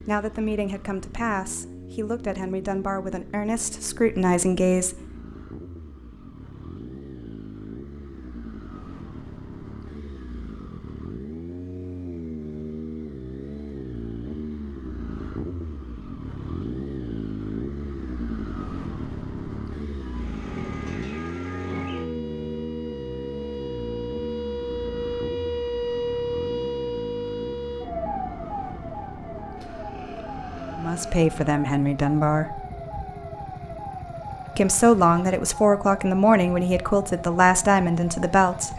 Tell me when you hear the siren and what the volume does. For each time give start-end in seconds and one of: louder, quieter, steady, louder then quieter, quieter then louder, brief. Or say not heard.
20.0-38.7 louder then quieter.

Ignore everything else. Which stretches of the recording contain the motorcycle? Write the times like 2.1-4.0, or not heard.
0.0-38.7.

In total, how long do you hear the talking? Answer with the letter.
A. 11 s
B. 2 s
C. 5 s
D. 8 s
A.